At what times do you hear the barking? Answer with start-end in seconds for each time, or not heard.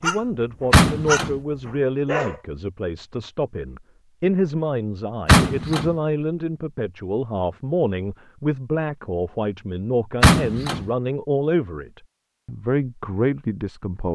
0.0-2.4.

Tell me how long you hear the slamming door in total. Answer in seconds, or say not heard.
2 s.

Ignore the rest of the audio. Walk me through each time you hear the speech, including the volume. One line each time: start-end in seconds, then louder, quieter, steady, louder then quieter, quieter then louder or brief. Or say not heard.
0.0-14.0 steady.